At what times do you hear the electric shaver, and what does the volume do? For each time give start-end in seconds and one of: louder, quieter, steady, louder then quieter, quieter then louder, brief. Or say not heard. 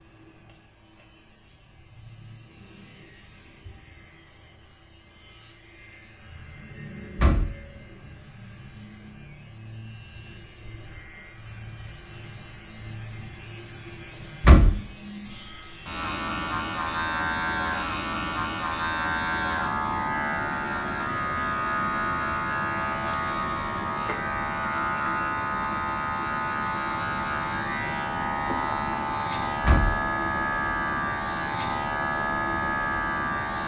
0.0-33.6 louder.